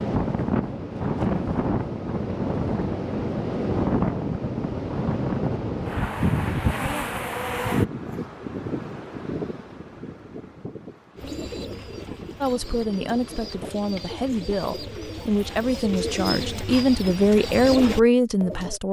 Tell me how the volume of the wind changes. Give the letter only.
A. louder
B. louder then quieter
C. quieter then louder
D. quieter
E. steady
D.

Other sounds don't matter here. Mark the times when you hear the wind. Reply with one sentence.
You can hear the wind from 0.0 to 13.8 s.